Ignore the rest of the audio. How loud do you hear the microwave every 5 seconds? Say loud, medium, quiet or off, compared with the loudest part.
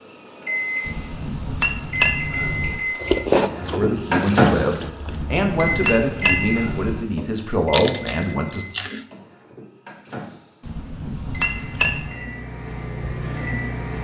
loud, medium, medium.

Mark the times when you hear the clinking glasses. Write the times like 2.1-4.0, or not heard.
0.8-2.8, 5.0-7.0, 10.6-12.2.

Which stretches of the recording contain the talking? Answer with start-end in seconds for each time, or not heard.
3.5-8.7.